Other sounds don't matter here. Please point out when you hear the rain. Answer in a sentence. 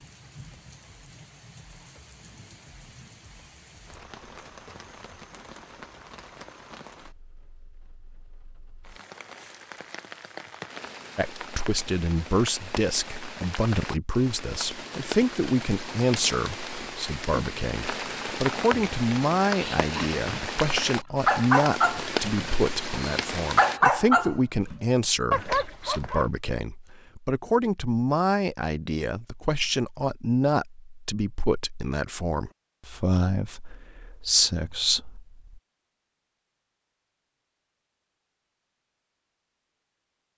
The rain can be heard from 0.0 to 23.8 s.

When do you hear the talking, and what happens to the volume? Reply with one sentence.
The talking can be heard from 11.2 to 35.6 s, at a steady volume.